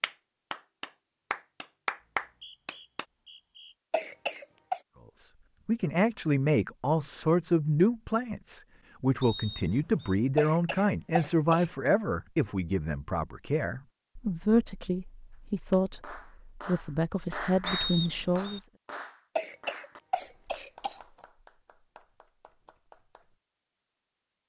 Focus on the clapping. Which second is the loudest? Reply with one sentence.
The loudest moment of the clapping is at 2 seconds.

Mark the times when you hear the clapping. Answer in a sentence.
The clapping can be heard from 0.0 to 3.0 s and from 15.3 to 23.4 s.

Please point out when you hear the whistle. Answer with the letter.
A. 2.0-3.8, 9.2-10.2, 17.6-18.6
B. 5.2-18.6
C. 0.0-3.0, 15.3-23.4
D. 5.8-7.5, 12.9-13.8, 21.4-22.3
A.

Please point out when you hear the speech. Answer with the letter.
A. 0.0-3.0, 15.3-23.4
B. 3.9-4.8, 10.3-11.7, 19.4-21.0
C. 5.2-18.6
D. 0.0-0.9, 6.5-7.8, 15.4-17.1
C.